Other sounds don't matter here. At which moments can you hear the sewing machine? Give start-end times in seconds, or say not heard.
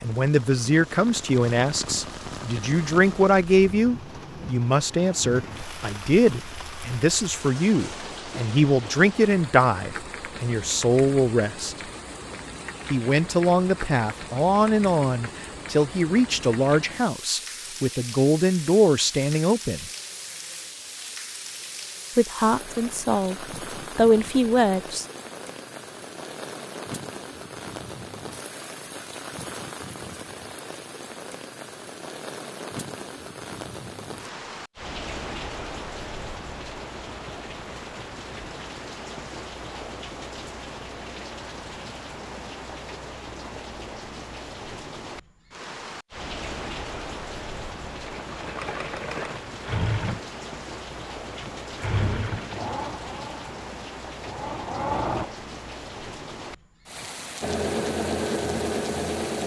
48.0-55.2, 57.4-59.4.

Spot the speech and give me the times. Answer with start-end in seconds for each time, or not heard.
0.0-11.8, 12.9-19.9, 22.1-25.1.